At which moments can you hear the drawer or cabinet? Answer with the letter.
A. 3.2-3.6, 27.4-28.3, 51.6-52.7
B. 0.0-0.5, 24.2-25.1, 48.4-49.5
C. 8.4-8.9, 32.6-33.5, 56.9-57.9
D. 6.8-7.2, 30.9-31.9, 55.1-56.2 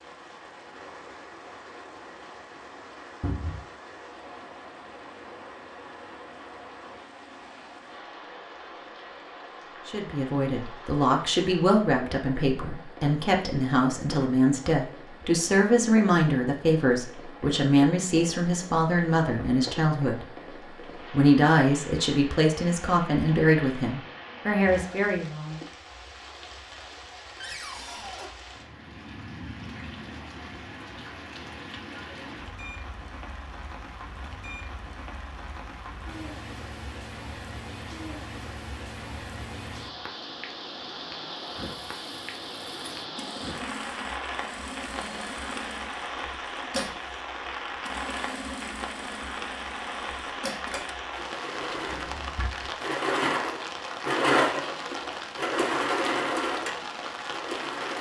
A.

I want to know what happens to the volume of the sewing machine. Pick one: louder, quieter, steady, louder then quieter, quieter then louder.
louder.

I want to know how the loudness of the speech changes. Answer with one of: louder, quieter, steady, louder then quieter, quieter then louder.
steady.